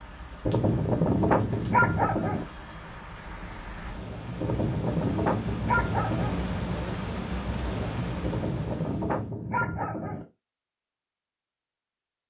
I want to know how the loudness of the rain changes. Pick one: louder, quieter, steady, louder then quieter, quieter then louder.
louder.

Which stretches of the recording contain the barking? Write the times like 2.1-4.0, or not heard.
0.5-2.5, 4.4-6.4, 8.2-10.2.